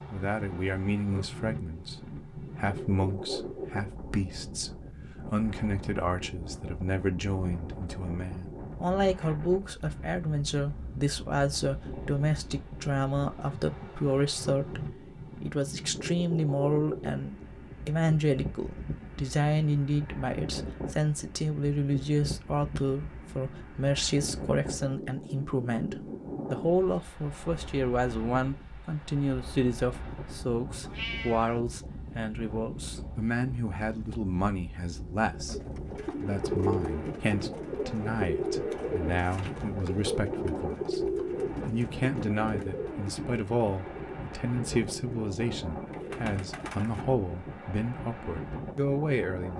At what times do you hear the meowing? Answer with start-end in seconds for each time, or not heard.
30.8-31.6.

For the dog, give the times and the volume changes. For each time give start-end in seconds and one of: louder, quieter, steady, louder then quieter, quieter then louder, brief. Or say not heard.
not heard.